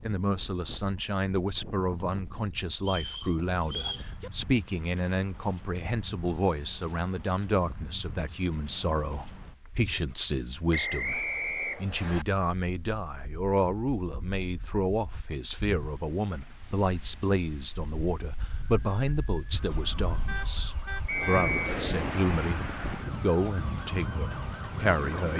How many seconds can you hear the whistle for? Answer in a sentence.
The whistle can be heard for 3 seconds in total.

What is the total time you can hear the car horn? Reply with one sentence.
The car horn can be heard for 2 seconds in total.